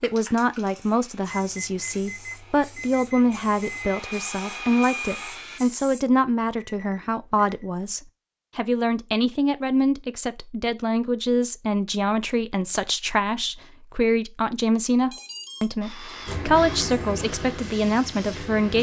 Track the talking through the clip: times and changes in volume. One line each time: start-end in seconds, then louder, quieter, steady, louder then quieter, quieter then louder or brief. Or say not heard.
0.0-18.7 steady.